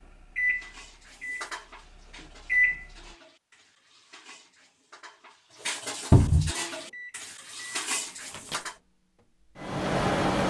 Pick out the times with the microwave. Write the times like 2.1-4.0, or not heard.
0.3-3.1, 6.7-10.4.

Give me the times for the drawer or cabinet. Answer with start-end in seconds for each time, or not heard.
6.1-6.5.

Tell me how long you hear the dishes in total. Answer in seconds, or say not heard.
8 s.